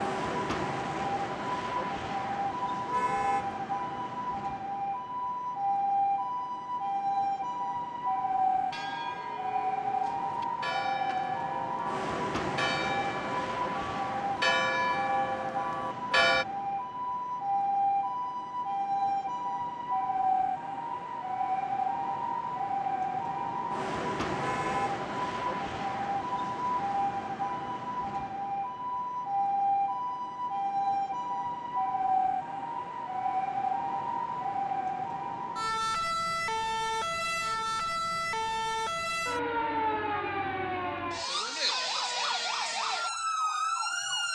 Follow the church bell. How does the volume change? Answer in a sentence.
The loudness of the church bell goes up.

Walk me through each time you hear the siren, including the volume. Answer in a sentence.
You can hear the siren from 0.0 to 44.2 s, at a steady volume.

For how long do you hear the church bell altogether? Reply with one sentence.
The church bell can be heard for 8 seconds in total.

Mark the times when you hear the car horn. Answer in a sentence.
You can hear the car horn from 2.9 to 3.5 s and from 24.4 to 24.9 s.